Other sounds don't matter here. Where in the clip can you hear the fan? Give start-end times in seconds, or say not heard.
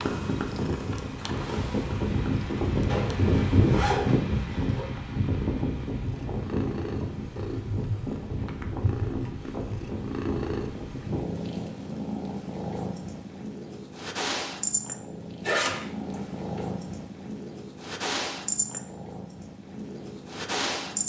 0.0-11.4.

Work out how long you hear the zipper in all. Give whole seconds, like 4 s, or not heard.
3 s.